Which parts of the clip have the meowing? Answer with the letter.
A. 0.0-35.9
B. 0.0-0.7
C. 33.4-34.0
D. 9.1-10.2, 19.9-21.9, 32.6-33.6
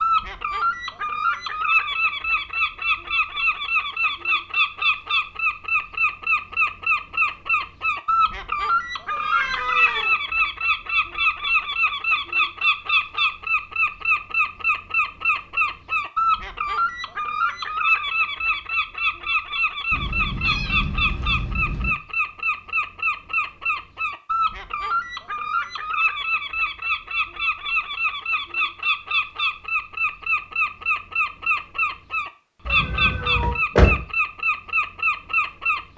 D.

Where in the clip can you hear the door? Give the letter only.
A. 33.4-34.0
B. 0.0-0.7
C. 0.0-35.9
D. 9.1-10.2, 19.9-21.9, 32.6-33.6
A.